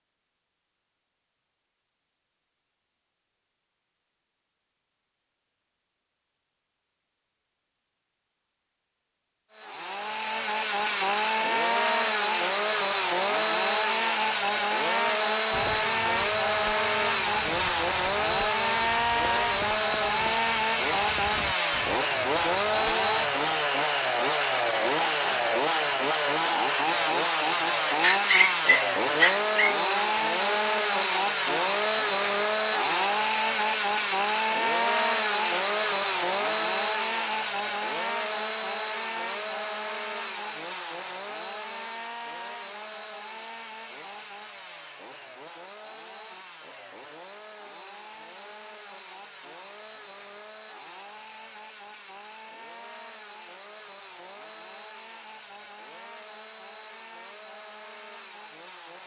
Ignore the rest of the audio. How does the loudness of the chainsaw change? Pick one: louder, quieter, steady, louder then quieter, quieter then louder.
quieter.